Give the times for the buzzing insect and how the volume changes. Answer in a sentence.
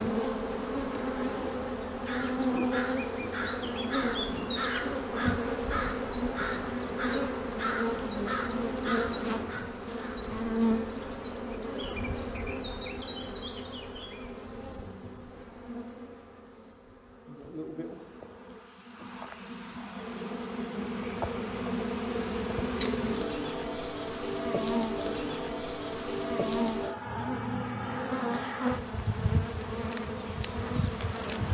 You can hear the buzzing insect from 0.0 to 31.4 s, getting quieter then louder.